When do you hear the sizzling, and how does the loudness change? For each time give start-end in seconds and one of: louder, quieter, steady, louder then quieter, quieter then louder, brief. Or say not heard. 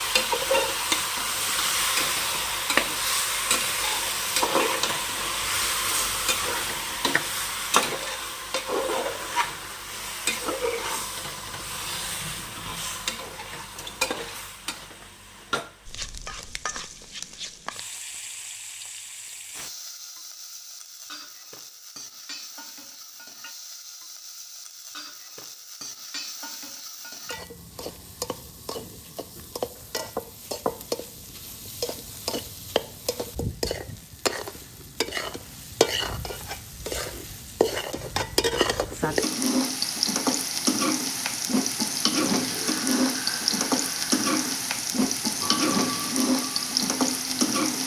0.0-47.8 quieter then louder.